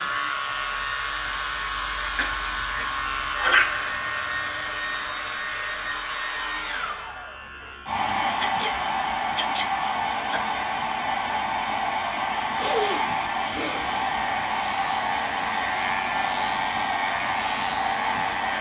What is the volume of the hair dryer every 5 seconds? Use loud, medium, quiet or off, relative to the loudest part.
medium, loud, loud, loud.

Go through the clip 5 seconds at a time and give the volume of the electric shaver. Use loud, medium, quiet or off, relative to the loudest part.
loud, medium, medium, loud.